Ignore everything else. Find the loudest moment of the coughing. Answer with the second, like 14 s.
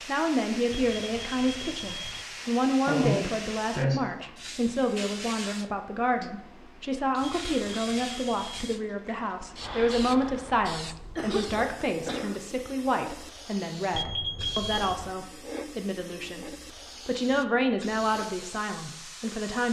3 s.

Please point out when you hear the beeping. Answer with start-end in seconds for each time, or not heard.
0.7-2.2, 7.2-8.8, 13.9-15.0.